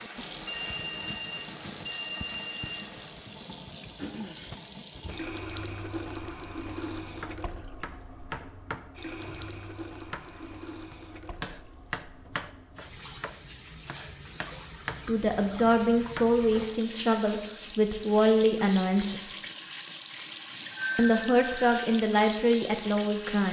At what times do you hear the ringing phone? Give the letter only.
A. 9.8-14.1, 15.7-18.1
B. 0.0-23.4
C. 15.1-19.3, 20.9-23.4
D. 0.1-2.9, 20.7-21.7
D.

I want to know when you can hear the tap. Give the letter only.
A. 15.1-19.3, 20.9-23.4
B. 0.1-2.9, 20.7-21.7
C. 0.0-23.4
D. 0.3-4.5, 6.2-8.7
C.